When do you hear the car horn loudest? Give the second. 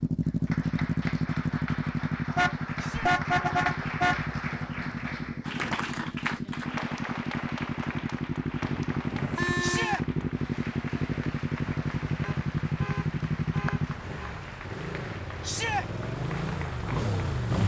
3 s.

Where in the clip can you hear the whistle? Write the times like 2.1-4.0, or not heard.
not heard.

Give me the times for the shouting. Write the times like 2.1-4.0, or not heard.
2.8-3.2, 9.6-10.1, 15.4-15.8.